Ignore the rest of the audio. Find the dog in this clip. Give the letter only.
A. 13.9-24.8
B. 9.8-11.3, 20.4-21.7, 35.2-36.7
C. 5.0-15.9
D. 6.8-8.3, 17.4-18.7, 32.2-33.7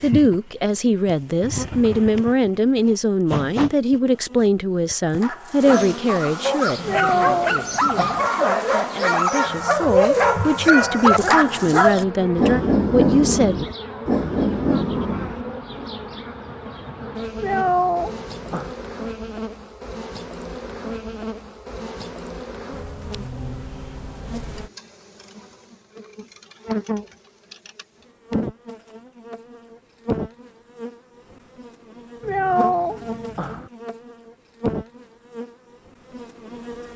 C.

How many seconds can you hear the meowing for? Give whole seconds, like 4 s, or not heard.
4 s.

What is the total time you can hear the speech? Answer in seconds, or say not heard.
14 s.